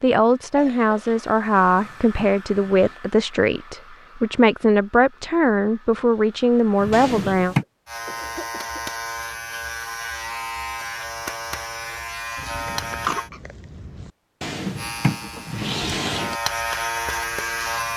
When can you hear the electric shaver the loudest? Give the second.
17 s.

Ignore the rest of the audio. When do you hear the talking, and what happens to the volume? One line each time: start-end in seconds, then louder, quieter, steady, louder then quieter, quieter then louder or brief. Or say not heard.
0.0-7.5 steady.